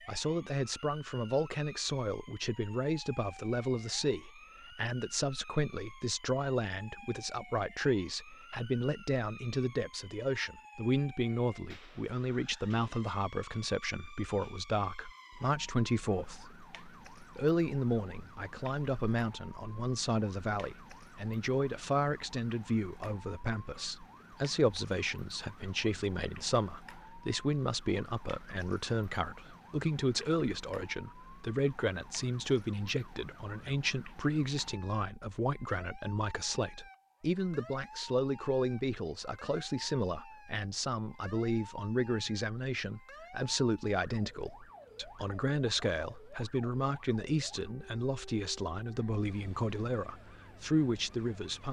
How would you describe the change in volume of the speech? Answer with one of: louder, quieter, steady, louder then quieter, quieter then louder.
steady.